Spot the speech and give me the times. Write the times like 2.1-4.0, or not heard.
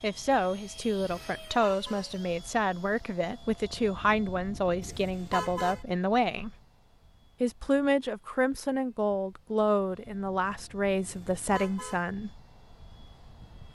0.0-6.5, 7.4-12.3.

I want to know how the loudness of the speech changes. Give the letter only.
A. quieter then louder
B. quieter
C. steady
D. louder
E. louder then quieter
C.